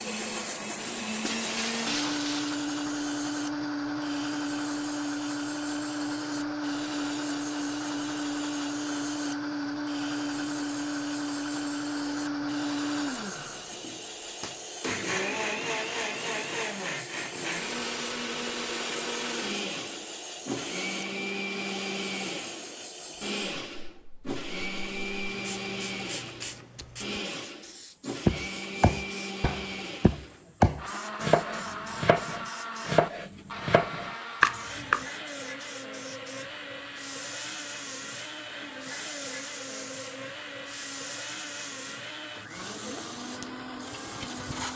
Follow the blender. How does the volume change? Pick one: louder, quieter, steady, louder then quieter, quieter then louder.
quieter.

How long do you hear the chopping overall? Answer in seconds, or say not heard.
7 s.